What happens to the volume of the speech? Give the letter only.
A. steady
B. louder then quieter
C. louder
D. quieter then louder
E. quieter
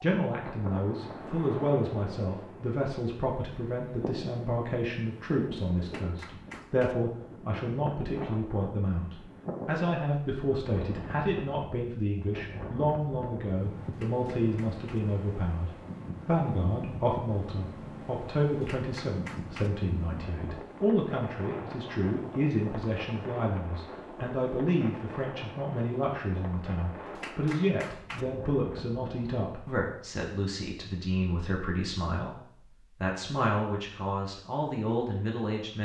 A.